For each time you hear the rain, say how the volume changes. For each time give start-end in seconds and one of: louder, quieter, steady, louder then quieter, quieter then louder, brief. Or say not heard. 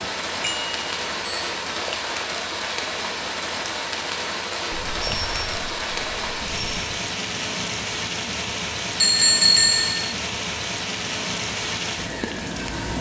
0.0-12.9 steady.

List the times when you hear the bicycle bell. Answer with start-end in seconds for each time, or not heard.
0.4-1.6, 4.7-6.8, 9.0-10.2.